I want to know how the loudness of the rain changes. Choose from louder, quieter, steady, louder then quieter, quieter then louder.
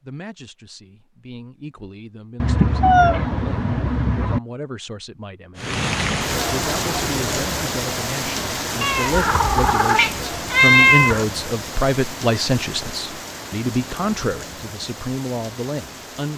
quieter.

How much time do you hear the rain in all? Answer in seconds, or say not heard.
11 s.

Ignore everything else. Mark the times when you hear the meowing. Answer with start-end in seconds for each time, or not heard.
2.4-4.4, 8.8-11.2.